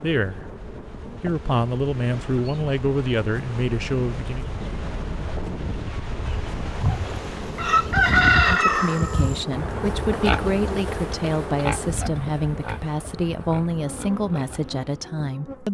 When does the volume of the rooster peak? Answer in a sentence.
The volume of the rooster peaks at 8 seconds.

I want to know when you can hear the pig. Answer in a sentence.
The pig can be heard from 8.7 to 14.9 s.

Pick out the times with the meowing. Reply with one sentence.
You can't hear the meowing here.